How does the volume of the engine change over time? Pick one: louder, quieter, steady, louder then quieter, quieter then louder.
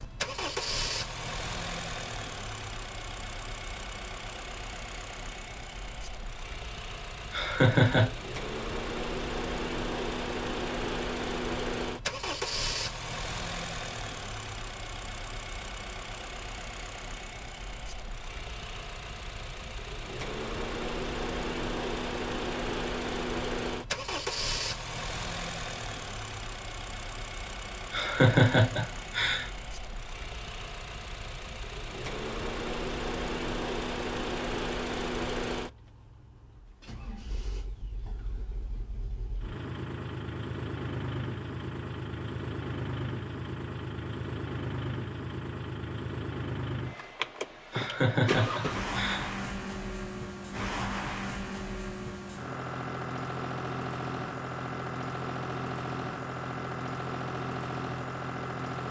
steady.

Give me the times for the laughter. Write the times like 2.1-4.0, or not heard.
7.3-8.1, 27.9-29.5, 47.7-49.2.